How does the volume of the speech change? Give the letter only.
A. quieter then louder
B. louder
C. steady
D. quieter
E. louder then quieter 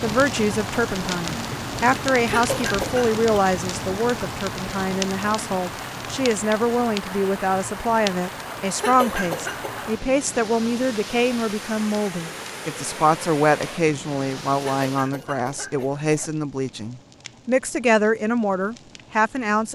C.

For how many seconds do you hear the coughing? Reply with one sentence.
The coughing can be heard for 4 seconds in total.